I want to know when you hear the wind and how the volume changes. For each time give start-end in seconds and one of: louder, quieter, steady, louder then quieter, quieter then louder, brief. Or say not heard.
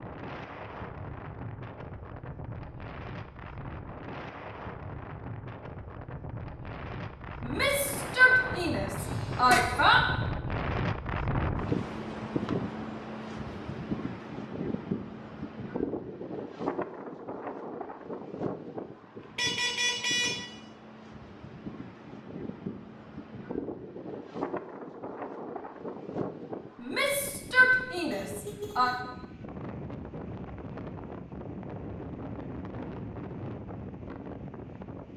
0.0-35.1 louder then quieter.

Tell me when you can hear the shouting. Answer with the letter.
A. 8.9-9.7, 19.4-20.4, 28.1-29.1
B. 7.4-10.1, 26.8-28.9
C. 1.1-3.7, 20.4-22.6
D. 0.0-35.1
B.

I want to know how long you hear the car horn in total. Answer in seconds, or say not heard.
3 s.